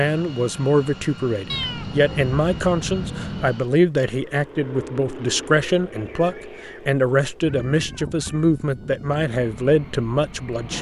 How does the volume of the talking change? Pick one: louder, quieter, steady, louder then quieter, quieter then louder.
steady.